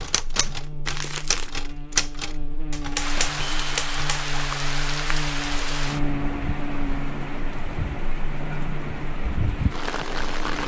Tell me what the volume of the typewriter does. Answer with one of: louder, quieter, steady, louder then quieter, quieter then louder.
louder then quieter.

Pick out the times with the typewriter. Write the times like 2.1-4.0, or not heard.
0.0-4.3.